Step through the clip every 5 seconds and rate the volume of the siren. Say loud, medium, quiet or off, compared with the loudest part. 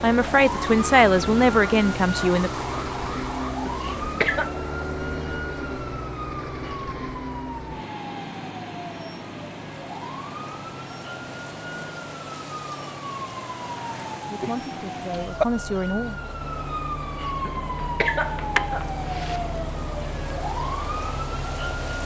loud, medium, medium, loud, loud.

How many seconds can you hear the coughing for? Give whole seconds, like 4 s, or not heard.
3 s.